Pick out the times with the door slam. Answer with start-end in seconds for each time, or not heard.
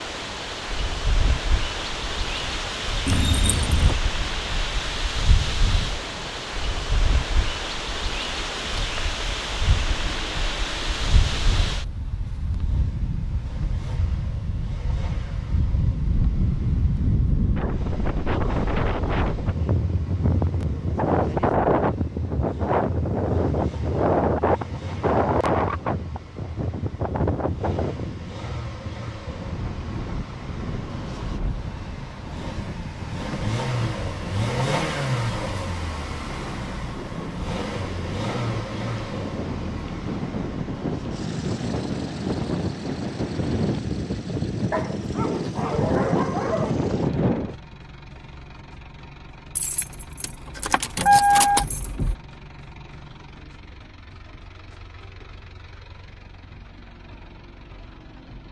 not heard.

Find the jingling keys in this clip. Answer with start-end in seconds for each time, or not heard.
3.0-4.0, 49.5-52.1.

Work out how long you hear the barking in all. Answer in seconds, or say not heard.
2 s.